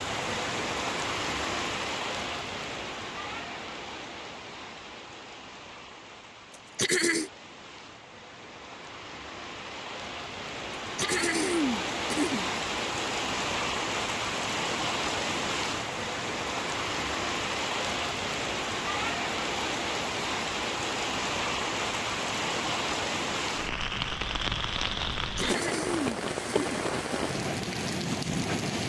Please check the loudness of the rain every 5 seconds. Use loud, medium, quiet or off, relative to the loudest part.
loud, quiet, loud, loud, loud, loud.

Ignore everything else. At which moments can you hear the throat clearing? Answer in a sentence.
The throat clearing can be heard from 6.8 to 7.3 s, from 10.9 to 12.5 s and from 25.4 to 26.9 s.